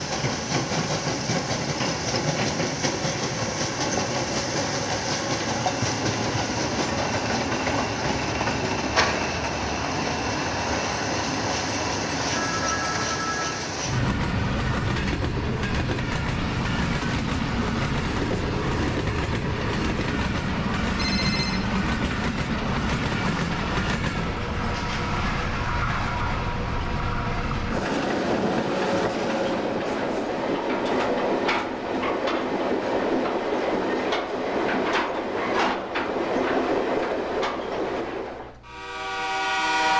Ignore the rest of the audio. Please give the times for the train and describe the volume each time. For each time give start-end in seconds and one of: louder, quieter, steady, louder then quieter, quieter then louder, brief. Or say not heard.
0.0-39.9 steady.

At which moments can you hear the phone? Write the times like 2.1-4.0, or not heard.
12.3-13.7, 20.9-21.6.